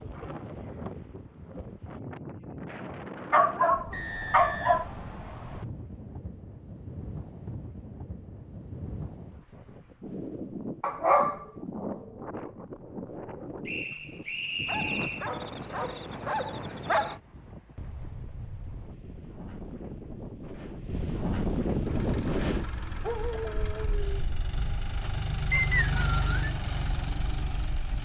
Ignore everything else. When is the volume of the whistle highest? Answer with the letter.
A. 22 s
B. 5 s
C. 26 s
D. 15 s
C.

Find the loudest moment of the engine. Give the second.
26 s.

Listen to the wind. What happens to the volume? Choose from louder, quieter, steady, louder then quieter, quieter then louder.
louder.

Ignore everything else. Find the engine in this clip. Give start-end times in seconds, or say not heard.
21.8-28.0.